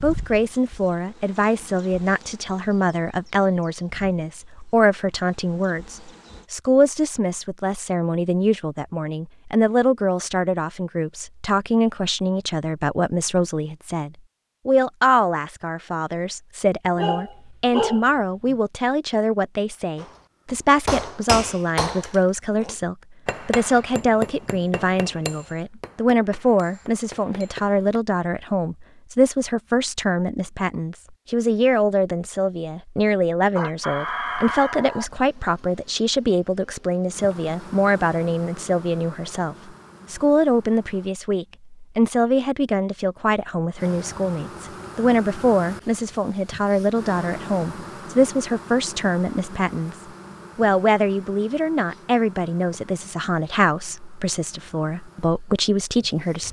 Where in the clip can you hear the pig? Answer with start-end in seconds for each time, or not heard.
not heard.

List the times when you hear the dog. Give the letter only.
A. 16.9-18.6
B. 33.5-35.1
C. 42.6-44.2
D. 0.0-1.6
A.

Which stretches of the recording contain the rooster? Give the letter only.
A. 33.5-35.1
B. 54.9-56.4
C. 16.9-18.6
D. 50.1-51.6
A.